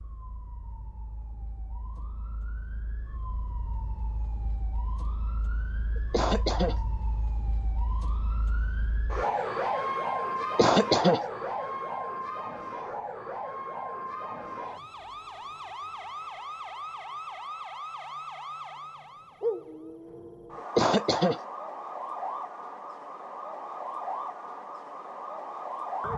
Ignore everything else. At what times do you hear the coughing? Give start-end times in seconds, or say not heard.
6.0-6.8, 10.4-11.2, 20.6-21.4.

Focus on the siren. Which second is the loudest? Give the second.
10 s.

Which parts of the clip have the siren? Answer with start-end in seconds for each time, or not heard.
0.0-26.1.